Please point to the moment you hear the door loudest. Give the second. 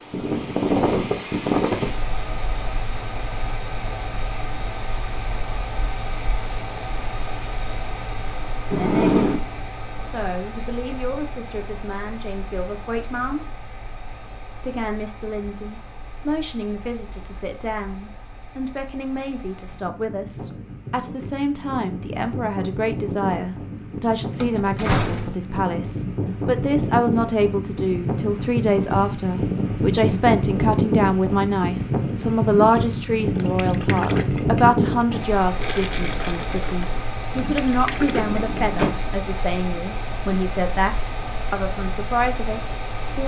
9 s.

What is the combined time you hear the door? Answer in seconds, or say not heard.
3 s.